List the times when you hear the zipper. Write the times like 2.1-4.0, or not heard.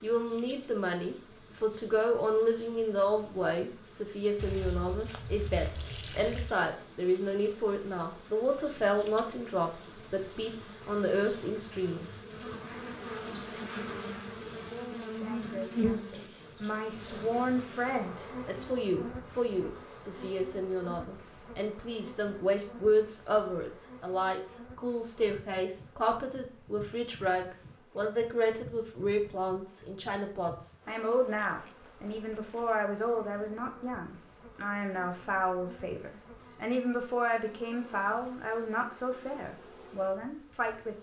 not heard.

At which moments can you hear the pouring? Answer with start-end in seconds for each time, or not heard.
4.3-6.5.